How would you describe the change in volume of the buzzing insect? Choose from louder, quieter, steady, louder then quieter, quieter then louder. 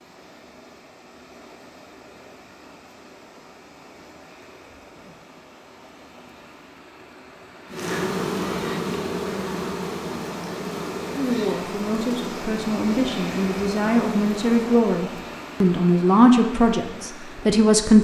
quieter.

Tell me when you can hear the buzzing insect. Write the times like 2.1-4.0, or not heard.
7.7-14.8.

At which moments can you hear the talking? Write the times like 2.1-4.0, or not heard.
11.2-17.9.